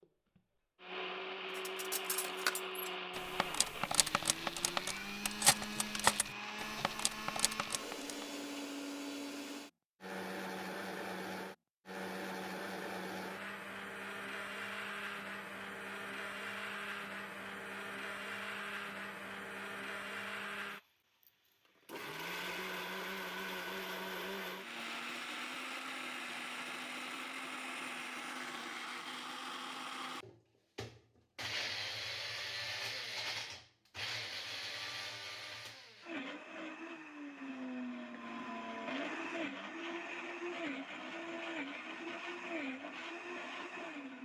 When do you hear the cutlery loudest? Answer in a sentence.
The volume of the cutlery peaks at 6 seconds.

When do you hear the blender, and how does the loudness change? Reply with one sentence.
The blender can be heard from 0.0 to 44.2 s, at a steady volume.